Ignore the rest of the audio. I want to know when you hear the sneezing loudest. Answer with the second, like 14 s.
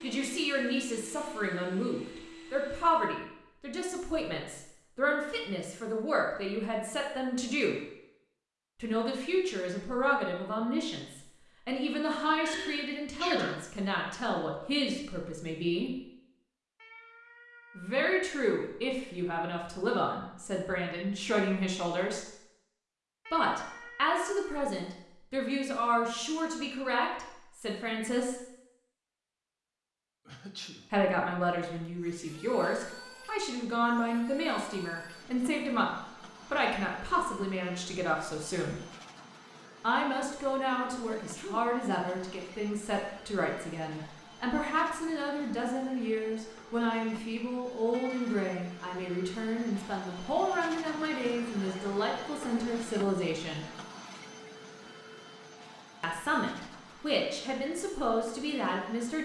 13 s.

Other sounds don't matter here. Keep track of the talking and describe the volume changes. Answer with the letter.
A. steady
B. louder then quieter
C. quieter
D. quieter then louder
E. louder
A.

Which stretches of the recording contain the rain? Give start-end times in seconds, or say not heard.
not heard.